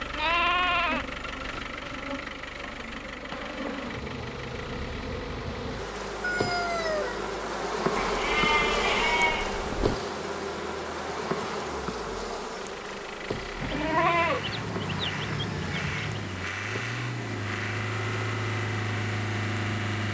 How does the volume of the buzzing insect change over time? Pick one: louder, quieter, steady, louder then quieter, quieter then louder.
louder then quieter.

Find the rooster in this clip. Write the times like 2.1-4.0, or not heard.
6.2-7.3.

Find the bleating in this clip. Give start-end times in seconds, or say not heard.
0.1-1.9, 8.0-9.9, 13.6-16.4.